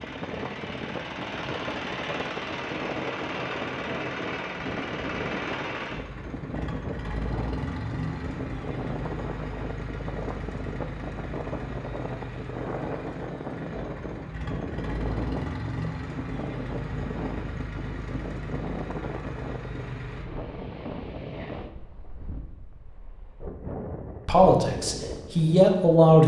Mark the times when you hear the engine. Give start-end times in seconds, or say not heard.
0.0-20.2.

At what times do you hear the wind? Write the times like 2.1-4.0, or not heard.
0.0-26.2.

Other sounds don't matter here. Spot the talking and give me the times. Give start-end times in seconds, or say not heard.
24.2-26.2.